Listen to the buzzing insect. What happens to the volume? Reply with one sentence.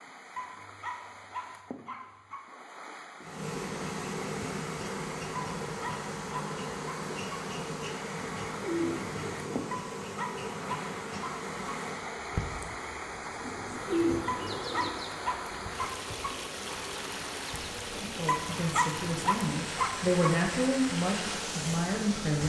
The loudness of the buzzing insect goes down.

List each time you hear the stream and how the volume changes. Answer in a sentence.
You can hear the stream from 0.0 to 22.4 s, getting louder.